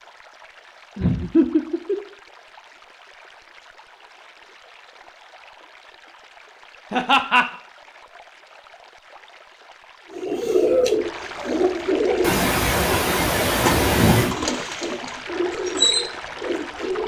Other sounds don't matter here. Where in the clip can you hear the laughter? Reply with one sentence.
The laughter can be heard from 0.9 to 2.0 s, from 6.9 to 7.5 s and from 12.2 to 14.3 s.